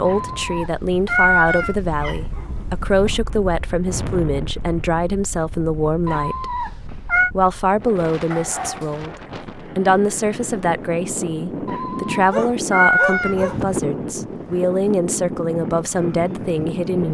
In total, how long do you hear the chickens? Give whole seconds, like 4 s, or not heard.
not heard.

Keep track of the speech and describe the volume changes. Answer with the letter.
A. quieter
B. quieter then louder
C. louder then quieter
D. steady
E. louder
D.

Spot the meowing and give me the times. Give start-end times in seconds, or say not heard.
0.1-1.8, 6.0-7.3, 11.7-13.3.